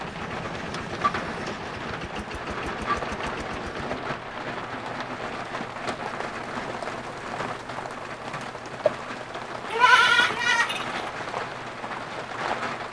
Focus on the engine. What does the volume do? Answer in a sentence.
The volume of the engine stays about the same.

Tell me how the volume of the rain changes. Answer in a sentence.
The volume of the rain stays about the same.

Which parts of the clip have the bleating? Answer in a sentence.
The bleating can be heard from 9.7 to 11.1 s.